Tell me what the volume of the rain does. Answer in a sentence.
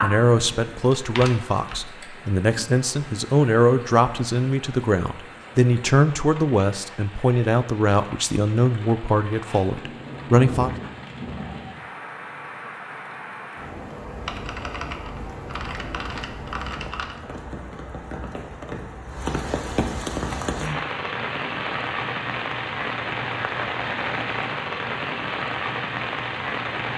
The loudness of the rain goes up.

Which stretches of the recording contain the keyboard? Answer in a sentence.
The keyboard can be heard from 0.9 to 1.9 s and from 14.2 to 17.2 s.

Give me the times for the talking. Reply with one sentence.
The talking can be heard from 0.0 to 10.8 s.